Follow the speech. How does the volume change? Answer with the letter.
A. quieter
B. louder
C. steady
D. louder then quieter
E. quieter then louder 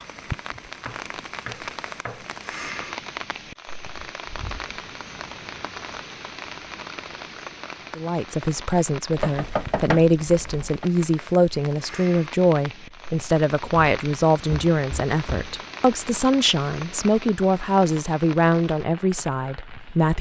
C.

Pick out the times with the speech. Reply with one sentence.
You can hear the speech from 8.0 to 20.1 s.